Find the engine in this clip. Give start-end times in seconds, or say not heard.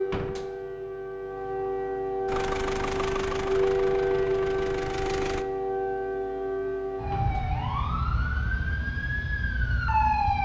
2.2-5.5.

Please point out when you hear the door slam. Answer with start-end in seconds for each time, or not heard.
0.1-0.5, 7.1-7.5.